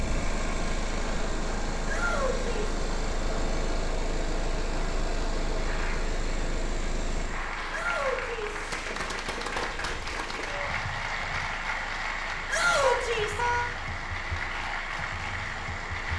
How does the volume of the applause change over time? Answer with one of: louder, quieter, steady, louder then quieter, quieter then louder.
louder.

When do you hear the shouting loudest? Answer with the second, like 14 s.
13 s.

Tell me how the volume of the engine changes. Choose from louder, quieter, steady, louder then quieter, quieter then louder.
quieter.